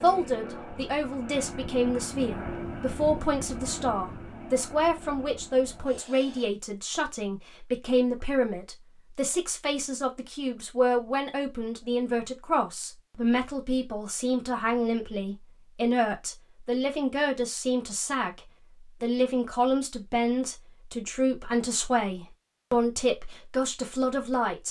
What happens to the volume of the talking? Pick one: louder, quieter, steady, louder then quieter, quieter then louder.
steady.